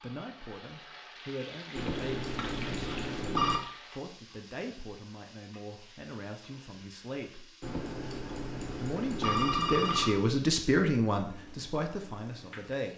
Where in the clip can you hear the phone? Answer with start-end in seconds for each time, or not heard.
1.8-3.6, 7.6-10.2.